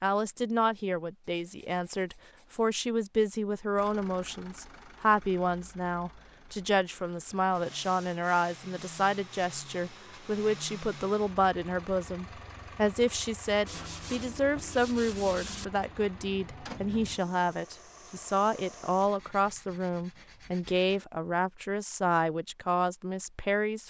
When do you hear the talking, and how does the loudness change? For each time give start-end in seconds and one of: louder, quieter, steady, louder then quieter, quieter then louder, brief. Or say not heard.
0.0-23.8 steady.